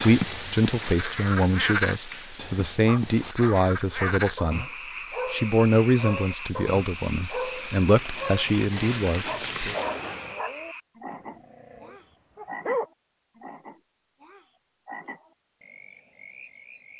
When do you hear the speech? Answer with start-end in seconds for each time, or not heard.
0.0-4.7, 5.2-9.8.